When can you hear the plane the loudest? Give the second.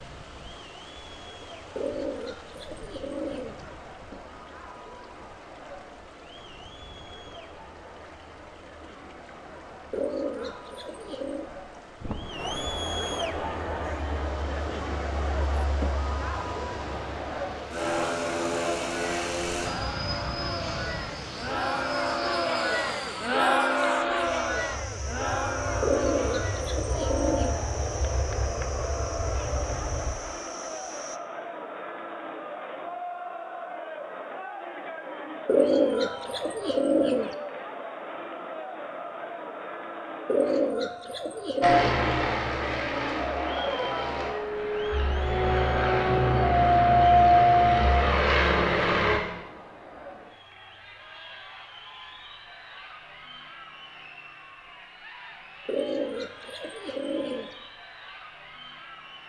47 s.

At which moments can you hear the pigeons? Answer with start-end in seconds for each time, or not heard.
1.8-3.6, 9.9-11.5, 25.8-27.6, 35.5-37.4, 40.2-41.9, 55.6-57.5.